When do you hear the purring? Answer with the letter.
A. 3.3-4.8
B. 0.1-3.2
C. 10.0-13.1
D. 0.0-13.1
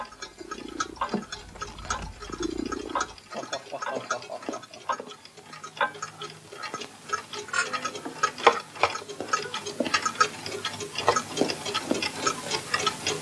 B.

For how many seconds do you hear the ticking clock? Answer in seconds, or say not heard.
13 s.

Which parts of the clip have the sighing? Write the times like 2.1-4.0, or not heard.
3.3-4.8.